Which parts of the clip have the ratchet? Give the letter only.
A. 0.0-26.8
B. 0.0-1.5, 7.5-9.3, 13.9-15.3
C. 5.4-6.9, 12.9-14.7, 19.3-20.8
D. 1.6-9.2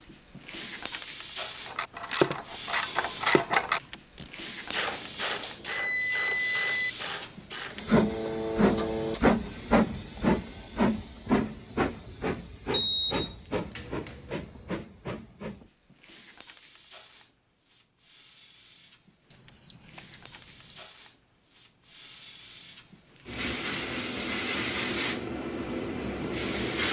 D.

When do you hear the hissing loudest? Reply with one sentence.
The loudest moment of the hissing is at 10 seconds.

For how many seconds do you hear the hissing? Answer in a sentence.
You can hear the hissing for 27 seconds altogether.